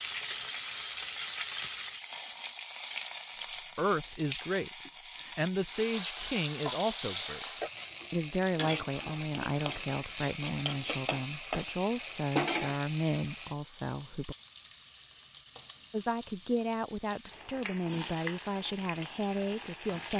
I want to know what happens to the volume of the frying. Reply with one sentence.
The volume of the frying stays about the same.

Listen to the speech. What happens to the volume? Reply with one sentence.
The volume of the speech stays about the same.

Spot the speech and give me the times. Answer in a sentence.
You can hear the speech from 3.8 to 7.5 s, from 8.1 to 14.3 s and from 15.9 to 20.1 s.